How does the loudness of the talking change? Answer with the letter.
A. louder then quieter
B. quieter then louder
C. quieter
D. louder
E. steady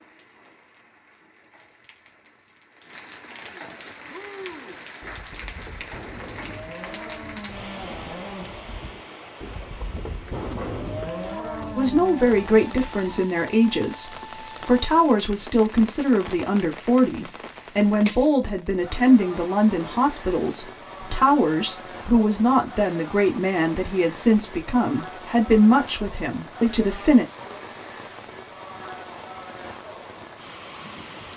E.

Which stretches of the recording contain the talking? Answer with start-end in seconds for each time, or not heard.
11.8-27.2.